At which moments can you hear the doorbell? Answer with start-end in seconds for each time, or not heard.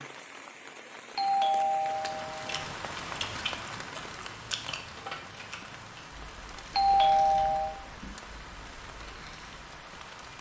1.1-2.6, 6.8-7.8.